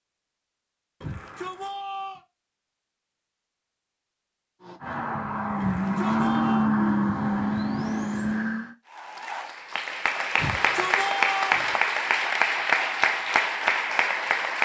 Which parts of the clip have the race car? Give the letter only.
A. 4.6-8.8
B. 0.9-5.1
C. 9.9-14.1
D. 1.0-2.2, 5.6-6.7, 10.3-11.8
A.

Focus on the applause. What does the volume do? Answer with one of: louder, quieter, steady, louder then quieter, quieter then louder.
louder.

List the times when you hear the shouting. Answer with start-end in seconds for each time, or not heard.
1.0-2.2, 5.6-6.7, 10.3-11.8.